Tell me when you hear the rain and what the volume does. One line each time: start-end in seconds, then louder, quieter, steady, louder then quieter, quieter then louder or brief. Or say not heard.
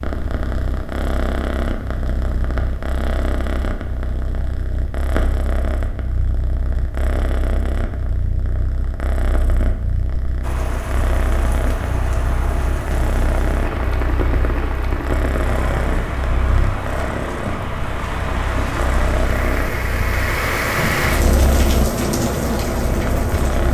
10.4-23.6 louder.